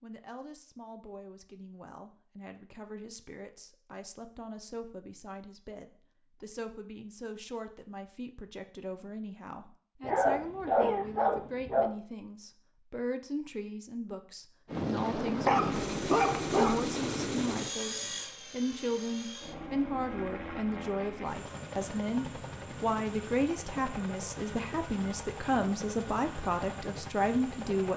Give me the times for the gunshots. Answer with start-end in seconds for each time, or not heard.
not heard.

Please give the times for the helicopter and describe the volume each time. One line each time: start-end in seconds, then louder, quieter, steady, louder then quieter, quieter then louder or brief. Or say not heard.
14.7-27.9 quieter.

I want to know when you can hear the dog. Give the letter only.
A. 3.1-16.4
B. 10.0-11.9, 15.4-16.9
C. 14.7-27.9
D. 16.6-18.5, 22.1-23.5
B.